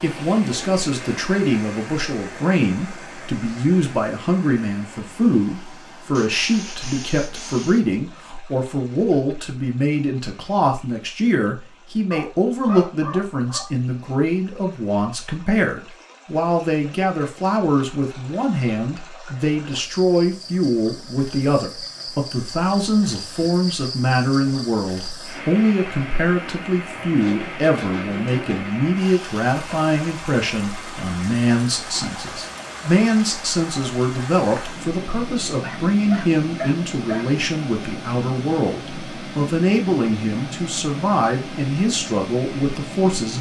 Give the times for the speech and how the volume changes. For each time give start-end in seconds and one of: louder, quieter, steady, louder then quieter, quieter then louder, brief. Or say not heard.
0.0-43.3 steady.